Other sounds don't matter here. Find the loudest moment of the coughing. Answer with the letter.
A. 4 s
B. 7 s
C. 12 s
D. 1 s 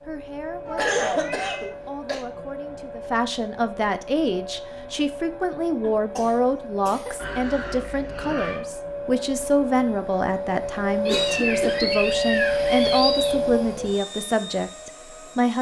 D.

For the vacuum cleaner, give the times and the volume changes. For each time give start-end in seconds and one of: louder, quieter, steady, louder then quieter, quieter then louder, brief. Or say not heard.
0.0-15.5 louder.